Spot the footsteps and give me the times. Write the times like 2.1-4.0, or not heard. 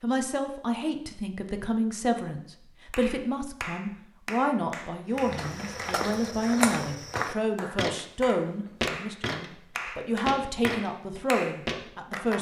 5.2-12.3.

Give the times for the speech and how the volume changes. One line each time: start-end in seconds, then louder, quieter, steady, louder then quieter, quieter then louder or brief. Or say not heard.
0.0-12.3 steady.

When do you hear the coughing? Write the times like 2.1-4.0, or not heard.
not heard.